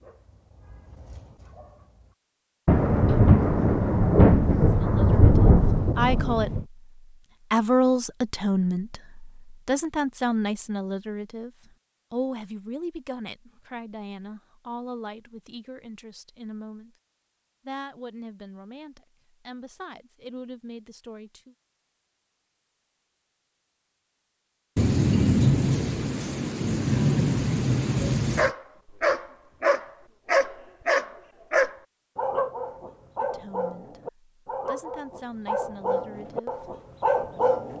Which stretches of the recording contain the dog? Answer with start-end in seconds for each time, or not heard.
0.0-2.1, 28.4-37.7.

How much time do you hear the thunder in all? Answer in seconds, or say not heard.
8 s.